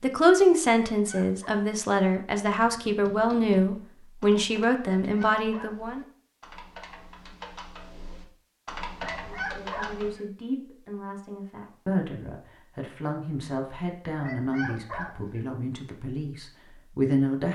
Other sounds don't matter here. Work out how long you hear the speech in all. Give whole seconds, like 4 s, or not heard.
14 s.